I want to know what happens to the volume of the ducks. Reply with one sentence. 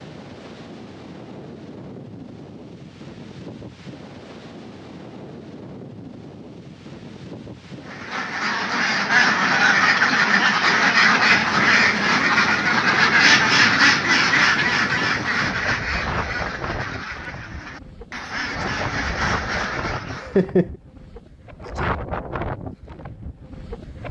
The volume of the ducks goes down.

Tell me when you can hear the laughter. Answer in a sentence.
You can hear the laughter from 20.1 to 20.7 s.